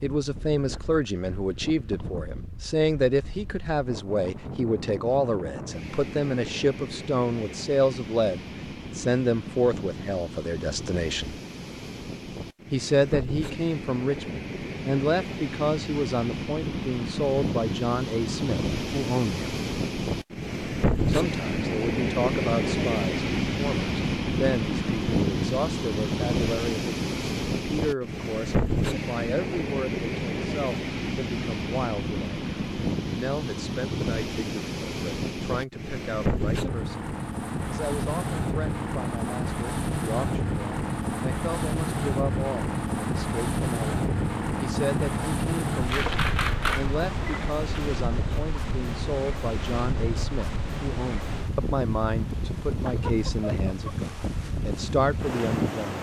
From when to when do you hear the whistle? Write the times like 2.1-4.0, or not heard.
not heard.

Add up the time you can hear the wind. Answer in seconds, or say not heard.
56 s.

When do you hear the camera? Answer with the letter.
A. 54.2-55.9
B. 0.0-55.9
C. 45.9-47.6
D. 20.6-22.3
C.